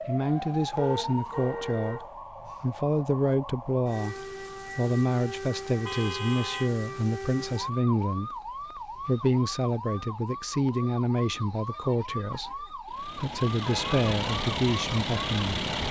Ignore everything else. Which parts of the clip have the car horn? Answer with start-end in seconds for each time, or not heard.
0.8-2.1, 5.8-6.7, 13.6-14.1.